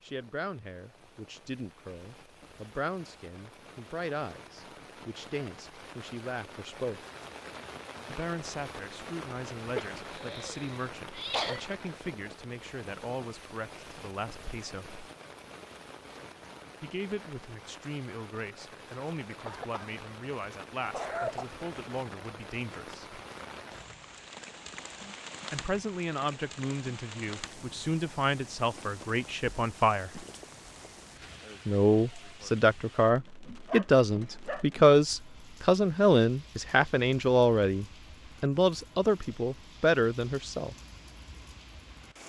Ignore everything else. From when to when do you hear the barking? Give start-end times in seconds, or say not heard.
33.6-34.6.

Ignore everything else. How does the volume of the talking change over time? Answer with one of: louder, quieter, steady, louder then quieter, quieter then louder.
louder.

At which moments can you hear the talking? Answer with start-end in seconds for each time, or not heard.
0.0-7.0, 8.1-15.0, 16.8-23.2, 25.5-30.2, 31.6-40.8.